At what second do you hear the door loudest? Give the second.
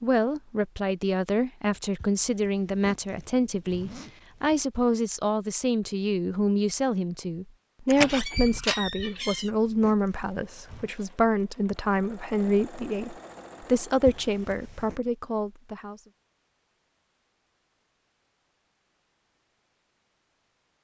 8 s.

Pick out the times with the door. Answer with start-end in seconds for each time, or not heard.
7.9-9.5.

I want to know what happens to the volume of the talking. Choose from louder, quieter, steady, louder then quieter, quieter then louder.
steady.